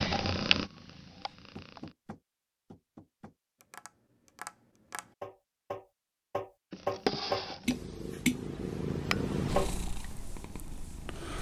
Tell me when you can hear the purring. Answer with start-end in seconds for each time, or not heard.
0.0-1.9, 6.7-11.3.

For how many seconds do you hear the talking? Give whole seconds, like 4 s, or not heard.
not heard.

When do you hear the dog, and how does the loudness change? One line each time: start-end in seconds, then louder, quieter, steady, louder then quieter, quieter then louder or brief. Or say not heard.
not heard.